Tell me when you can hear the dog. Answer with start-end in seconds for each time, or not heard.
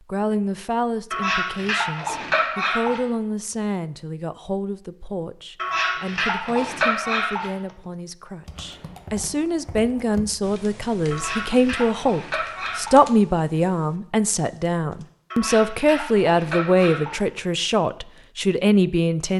1.1-3.0, 5.5-7.5, 11.1-13.0, 15.3-17.2.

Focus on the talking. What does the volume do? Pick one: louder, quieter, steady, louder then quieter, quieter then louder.
louder.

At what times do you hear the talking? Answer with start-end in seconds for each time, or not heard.
0.1-19.3.